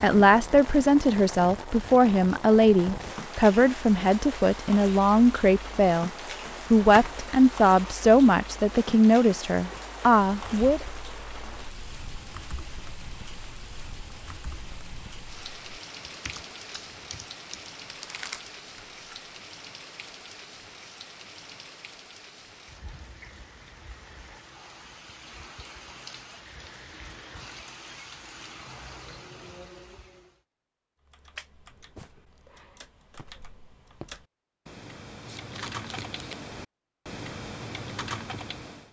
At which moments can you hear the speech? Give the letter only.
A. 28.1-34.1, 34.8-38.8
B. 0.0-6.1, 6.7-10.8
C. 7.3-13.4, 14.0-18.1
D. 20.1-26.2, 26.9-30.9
B.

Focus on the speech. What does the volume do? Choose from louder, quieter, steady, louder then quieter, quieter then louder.
steady.